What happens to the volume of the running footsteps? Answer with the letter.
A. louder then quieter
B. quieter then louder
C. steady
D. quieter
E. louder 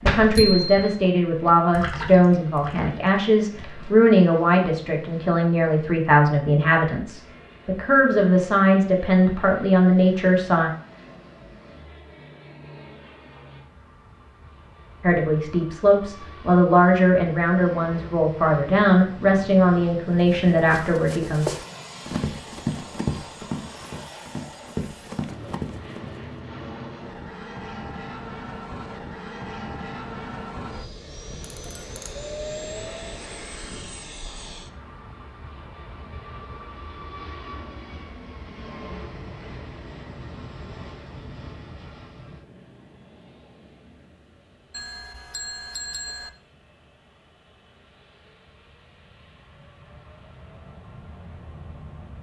B.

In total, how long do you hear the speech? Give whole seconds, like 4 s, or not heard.
17 s.